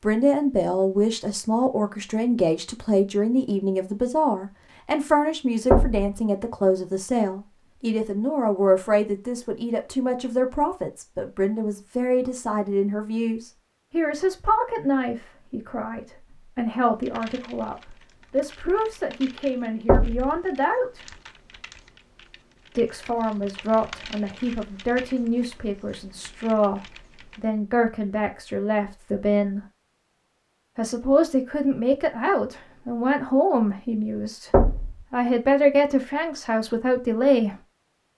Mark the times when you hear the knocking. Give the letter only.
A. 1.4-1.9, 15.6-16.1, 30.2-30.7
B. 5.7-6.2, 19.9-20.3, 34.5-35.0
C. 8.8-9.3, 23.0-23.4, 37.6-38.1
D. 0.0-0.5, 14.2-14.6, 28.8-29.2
B.